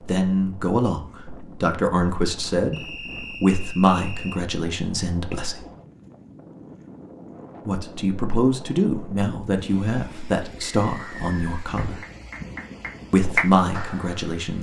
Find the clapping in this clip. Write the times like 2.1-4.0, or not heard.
11.8-14.5.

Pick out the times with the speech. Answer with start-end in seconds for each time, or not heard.
0.0-5.7, 7.7-12.0, 13.1-14.5.